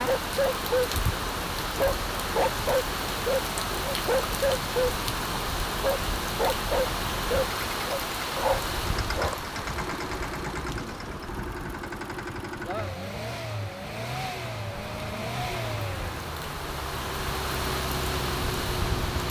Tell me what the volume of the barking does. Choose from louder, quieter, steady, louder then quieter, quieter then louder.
steady.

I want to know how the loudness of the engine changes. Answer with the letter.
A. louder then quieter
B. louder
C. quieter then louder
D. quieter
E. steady
B.